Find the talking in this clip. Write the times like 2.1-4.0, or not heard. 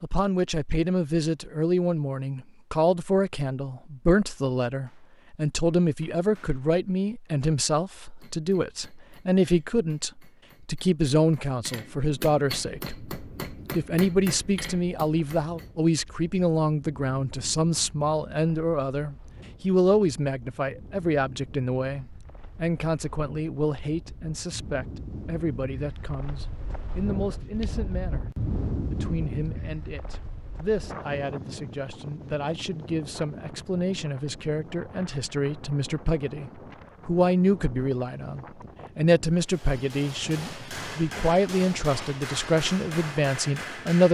0.0-44.0.